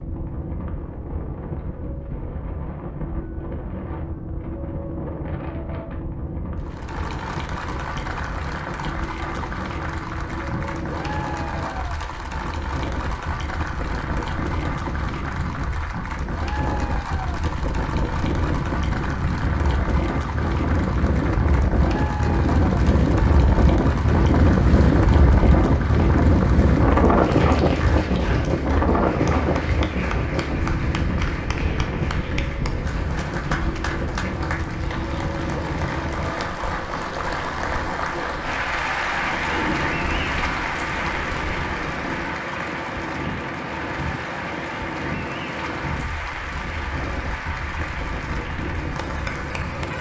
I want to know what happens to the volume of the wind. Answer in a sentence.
The volume of the wind goes up, then down.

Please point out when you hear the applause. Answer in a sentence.
The applause can be heard from 6.5 to 49.9 s.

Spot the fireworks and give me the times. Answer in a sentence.
You can't hear the fireworks here.